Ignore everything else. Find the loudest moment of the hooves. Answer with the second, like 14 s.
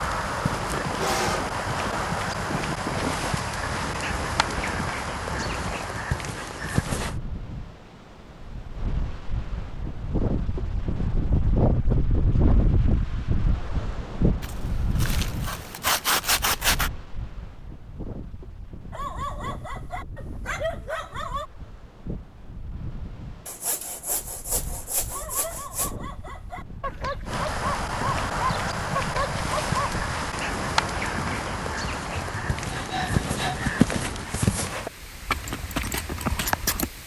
34 s.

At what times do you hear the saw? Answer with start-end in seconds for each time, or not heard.
0.4-2.1, 14.4-16.9, 23.4-25.9, 32.1-33.8.